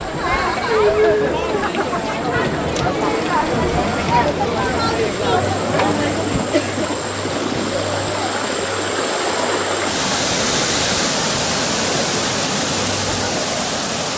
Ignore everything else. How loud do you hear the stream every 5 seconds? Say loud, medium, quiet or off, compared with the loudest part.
medium, loud, loud.